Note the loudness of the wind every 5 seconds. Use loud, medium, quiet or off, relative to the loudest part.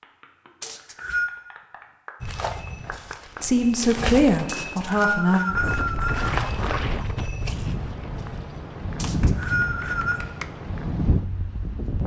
off, loud, loud.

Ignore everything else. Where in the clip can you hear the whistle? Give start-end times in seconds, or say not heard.
0.6-1.3, 4.5-6.3, 8.9-10.2.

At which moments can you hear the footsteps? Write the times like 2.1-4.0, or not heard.
2.2-8.6.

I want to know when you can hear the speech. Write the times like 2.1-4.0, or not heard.
3.4-5.4.